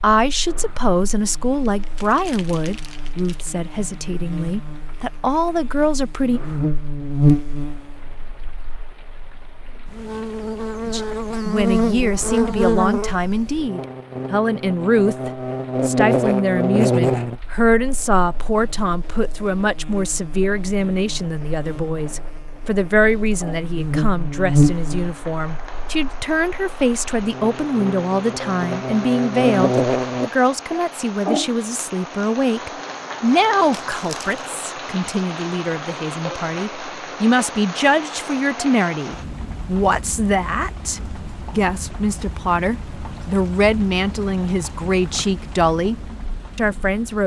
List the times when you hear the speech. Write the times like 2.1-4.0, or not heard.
0.0-6.4, 10.8-47.2.